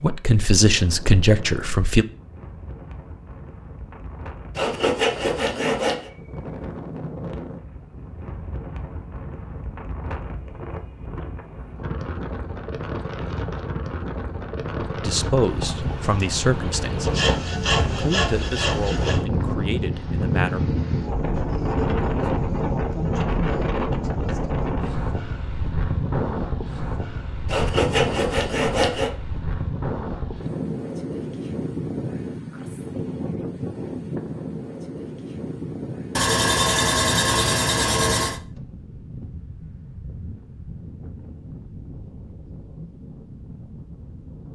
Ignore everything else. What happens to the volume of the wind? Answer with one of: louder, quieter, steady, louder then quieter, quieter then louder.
louder then quieter.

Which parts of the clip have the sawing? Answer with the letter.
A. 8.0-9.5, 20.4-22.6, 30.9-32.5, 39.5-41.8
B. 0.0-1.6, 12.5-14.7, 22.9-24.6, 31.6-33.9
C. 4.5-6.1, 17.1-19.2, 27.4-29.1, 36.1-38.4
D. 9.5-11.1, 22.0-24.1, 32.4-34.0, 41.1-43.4
C.